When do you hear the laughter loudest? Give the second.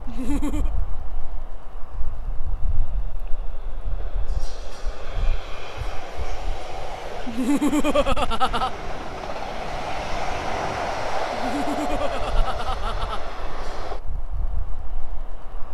8 s.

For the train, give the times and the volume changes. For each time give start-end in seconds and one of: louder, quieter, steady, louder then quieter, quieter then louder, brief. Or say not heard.
0.0-15.6 louder then quieter.